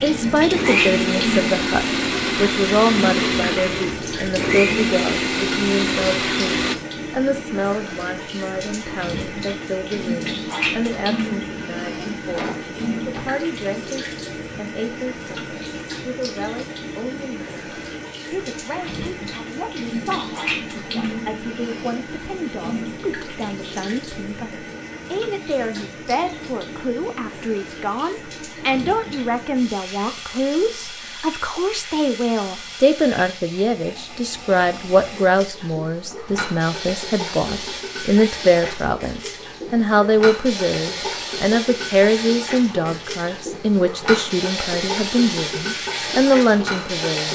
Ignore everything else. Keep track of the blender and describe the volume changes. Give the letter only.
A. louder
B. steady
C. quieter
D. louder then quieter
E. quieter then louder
B.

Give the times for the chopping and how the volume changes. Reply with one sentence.
You can't hear the chopping here.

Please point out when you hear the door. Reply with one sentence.
The door can be heard from 12.3 to 13.3 s.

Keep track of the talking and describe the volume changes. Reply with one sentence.
The loudness of the talking goes down, then up.